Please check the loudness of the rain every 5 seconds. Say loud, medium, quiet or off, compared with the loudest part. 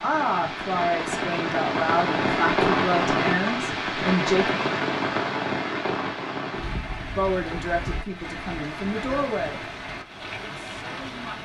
loud, medium, medium.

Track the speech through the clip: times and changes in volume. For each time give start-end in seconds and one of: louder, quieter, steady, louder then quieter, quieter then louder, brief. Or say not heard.
0.0-4.5 steady
7.2-9.7 brief
10.4-11.4 brief.